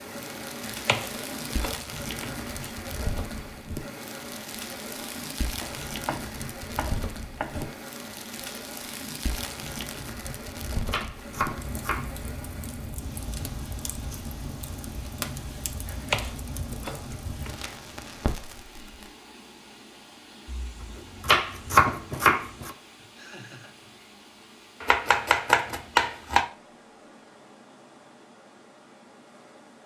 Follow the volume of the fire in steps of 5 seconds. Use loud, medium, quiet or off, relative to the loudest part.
loud, loud, loud, loud, off, off.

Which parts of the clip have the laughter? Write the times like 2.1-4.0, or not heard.
23.1-23.8.